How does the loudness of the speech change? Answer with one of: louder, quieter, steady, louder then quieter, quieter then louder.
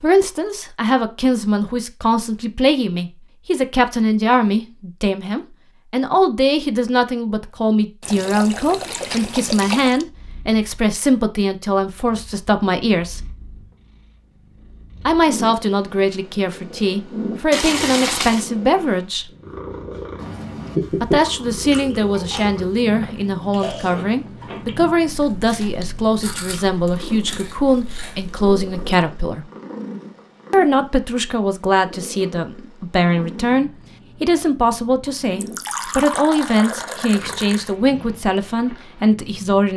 steady.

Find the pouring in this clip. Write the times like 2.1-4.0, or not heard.
8.0-10.1, 17.5-18.5, 35.4-37.8.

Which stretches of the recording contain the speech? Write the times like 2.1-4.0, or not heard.
0.0-13.2, 15.1-19.3, 20.9-29.4, 30.5-39.7.